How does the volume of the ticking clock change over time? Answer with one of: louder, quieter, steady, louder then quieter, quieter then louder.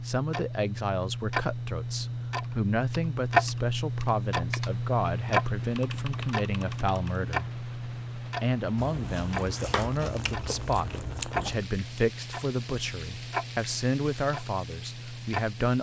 quieter.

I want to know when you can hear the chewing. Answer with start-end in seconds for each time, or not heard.
8.8-11.7.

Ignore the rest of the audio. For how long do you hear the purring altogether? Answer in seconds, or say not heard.
not heard.